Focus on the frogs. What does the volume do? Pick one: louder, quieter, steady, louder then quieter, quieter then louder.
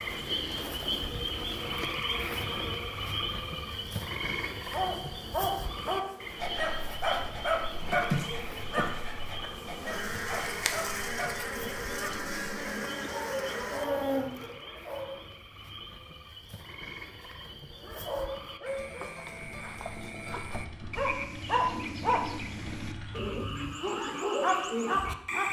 quieter then louder.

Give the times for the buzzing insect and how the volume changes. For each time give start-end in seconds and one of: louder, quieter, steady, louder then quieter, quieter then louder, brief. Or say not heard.
0.0-14.6 quieter then louder.